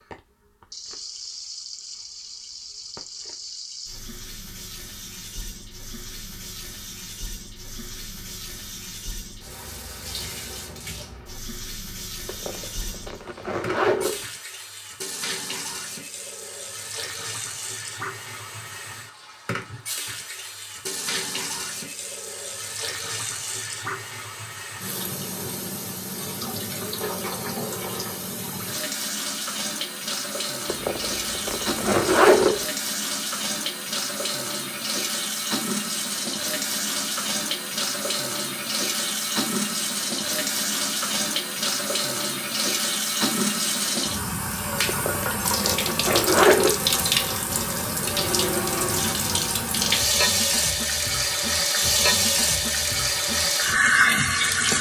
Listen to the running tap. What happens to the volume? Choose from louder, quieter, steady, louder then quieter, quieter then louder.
louder.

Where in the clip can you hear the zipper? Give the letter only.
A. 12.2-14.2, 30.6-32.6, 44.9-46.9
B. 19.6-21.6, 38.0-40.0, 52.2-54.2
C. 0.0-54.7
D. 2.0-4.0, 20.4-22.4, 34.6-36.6
A.